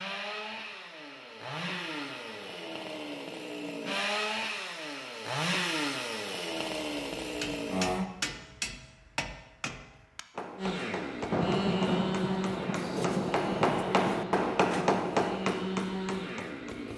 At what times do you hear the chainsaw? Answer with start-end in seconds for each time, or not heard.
0.0-8.1, 10.6-16.9.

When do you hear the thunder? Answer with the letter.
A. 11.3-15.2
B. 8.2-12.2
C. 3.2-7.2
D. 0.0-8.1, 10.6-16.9
A.